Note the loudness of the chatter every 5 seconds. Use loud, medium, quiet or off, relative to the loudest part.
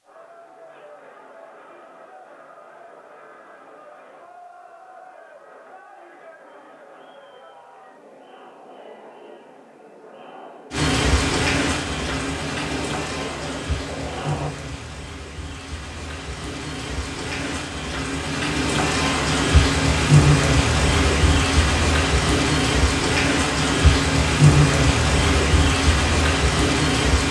medium, medium, loud, off, off, off.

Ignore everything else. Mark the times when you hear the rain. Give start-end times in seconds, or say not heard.
10.7-27.2.